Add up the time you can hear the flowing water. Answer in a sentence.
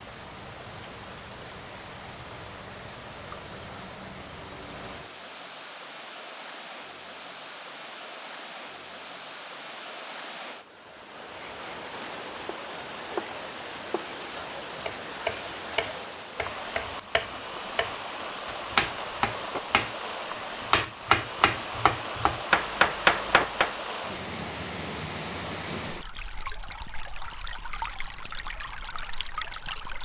You can hear the flowing water for 30 seconds altogether.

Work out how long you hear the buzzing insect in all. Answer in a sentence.
The buzzing insect can't be heard in this clip.